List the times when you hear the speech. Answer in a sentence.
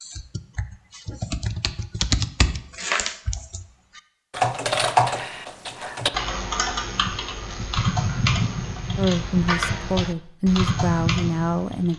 You can hear the speech from 8.9 to 11.9 s.